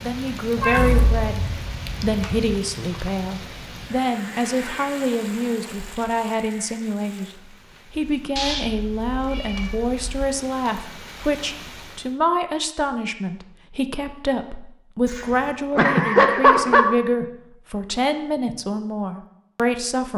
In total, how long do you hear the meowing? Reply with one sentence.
The meowing can be heard for 5 seconds in total.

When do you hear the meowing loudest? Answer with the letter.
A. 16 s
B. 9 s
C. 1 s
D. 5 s
A.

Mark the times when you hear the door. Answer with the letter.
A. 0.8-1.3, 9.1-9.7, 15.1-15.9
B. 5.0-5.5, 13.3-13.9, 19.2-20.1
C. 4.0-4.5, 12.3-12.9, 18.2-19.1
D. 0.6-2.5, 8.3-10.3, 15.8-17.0
A.